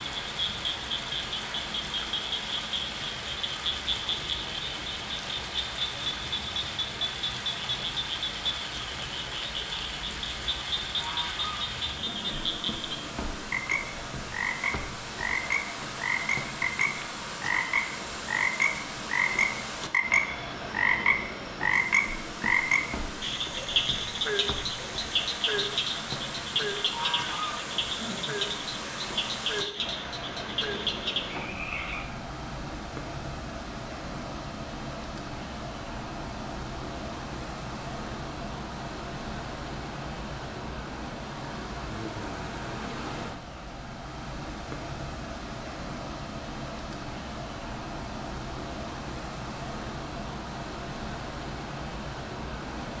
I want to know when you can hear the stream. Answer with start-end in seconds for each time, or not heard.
0.0-52.9.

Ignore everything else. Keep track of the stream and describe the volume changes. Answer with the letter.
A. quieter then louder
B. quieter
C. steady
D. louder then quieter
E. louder
C.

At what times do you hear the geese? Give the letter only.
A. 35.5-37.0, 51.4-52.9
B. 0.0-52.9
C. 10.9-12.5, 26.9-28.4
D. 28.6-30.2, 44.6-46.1
C.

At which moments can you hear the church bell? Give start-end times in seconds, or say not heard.
not heard.